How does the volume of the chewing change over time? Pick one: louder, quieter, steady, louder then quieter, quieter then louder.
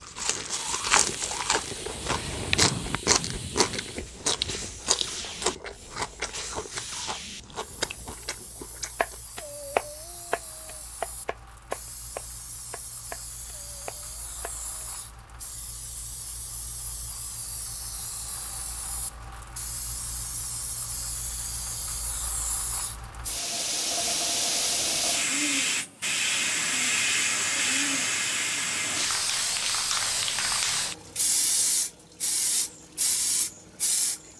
quieter.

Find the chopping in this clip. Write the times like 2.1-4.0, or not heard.
8.9-14.9.